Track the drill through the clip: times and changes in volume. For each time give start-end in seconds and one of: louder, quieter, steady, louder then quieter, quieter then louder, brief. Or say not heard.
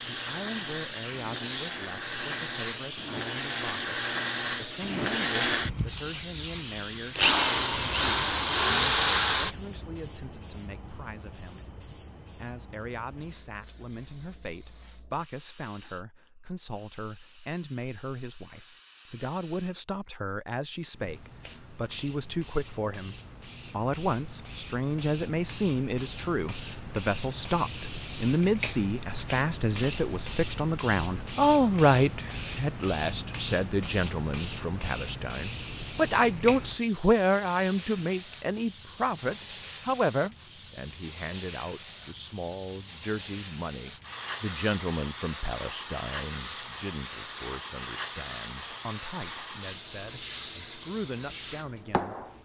0.0-9.6 louder.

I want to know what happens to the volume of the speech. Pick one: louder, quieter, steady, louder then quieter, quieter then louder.
louder then quieter.